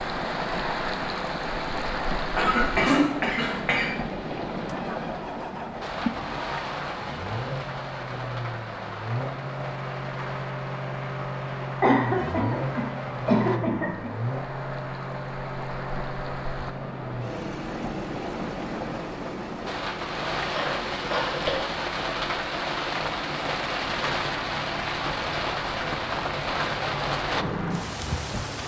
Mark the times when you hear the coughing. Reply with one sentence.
The coughing can be heard from 2.4 to 3.9 s, from 11.8 to 14.1 s and from 20.5 to 21.6 s.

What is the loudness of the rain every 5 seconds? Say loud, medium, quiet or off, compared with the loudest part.
loud, medium, medium, medium, loud, loud.